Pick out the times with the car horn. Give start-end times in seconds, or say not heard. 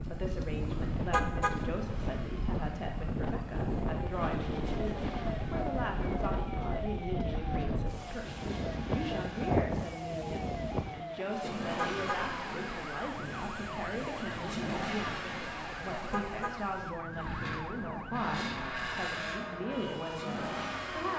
1.1-1.6, 11.8-12.2, 16.1-16.6.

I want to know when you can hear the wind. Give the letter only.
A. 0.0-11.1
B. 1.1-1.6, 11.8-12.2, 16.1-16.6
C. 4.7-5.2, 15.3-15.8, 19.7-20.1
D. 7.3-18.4
A.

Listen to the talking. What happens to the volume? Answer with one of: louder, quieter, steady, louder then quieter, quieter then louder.
steady.